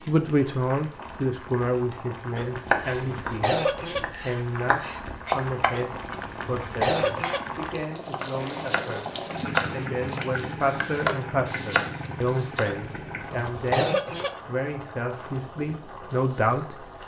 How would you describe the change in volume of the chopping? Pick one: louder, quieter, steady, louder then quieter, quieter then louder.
quieter then louder.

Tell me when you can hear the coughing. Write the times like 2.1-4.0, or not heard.
2.4-4.0, 5.7-7.4, 12.7-14.3.